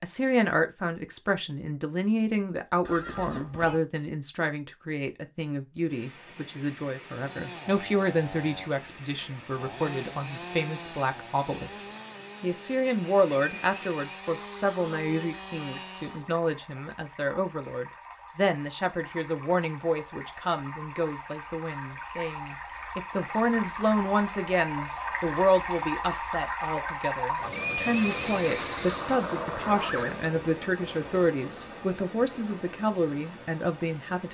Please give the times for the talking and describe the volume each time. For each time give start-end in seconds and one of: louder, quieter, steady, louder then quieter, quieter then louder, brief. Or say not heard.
0.0-34.2 steady.